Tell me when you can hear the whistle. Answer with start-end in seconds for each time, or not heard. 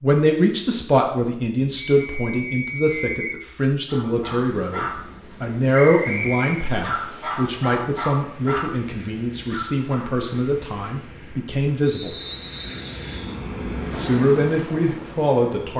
1.8-3.4, 5.8-6.7, 11.8-13.3.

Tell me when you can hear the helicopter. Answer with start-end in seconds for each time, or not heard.
not heard.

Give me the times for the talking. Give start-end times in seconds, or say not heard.
0.0-12.2, 13.9-15.7.